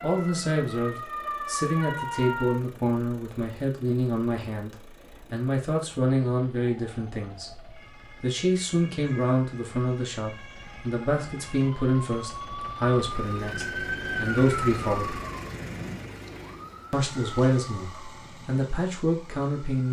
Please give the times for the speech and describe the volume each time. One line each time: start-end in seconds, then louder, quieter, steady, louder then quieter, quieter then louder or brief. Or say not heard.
0.0-15.2 steady
16.9-19.8 brief.